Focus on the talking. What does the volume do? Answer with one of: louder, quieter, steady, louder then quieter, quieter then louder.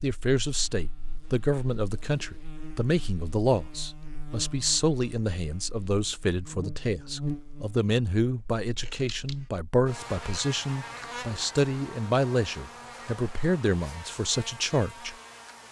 steady.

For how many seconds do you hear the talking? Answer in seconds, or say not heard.
15 s.